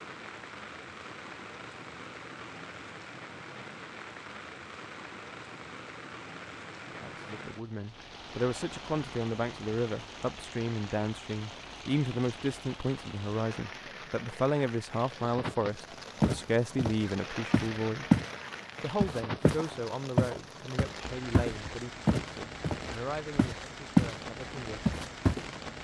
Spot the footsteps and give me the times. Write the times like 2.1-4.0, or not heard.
16.2-18.3, 19.0-24.1, 24.9-25.4.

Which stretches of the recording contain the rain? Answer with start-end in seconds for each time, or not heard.
0.0-25.7.